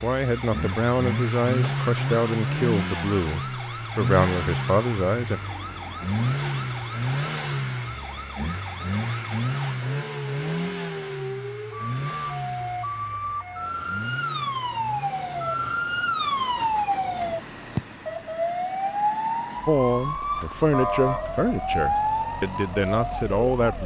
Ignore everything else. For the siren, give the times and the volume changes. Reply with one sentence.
You can hear the siren from 0.2 to 23.8 s, getting louder.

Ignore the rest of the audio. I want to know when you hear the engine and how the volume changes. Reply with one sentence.
You can hear the engine from 0.0 to 23.8 s, getting quieter.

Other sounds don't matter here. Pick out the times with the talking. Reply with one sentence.
You can hear the talking from 0.0 to 5.4 s and from 19.6 to 23.8 s.